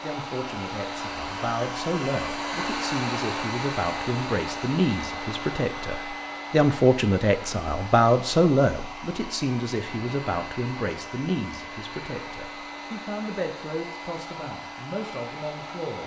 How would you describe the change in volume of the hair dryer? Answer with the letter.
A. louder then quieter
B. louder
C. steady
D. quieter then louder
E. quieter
E.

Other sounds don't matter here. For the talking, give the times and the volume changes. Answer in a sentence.
The talking can be heard from 0.0 to 16.0 s, getting louder then quieter.